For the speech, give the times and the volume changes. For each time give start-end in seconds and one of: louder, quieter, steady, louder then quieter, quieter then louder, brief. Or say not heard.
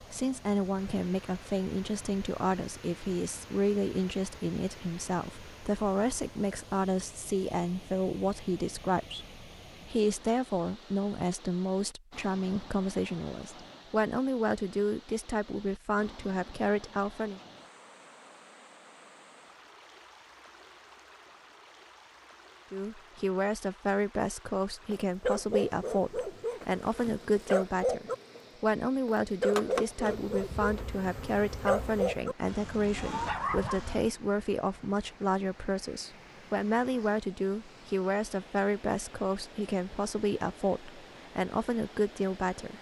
0.1-17.4 steady
22.7-42.7 steady.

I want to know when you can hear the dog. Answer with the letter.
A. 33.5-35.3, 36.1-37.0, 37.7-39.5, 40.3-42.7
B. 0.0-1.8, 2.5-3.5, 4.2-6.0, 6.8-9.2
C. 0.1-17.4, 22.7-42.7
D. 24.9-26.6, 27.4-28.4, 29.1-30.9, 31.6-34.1
D.